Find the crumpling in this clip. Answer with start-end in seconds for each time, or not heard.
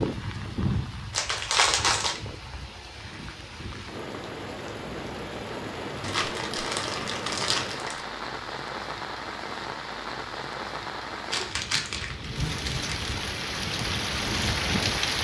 1.1-2.2, 6.0-8.0, 11.3-13.2.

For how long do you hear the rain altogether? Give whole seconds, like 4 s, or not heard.
15 s.